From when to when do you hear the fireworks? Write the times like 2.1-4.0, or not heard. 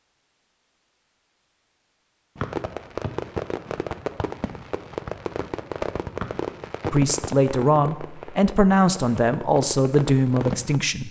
2.4-10.8.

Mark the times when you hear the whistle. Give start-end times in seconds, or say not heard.
2.4-3.1, 6.2-6.9.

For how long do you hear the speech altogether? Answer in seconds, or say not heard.
4 s.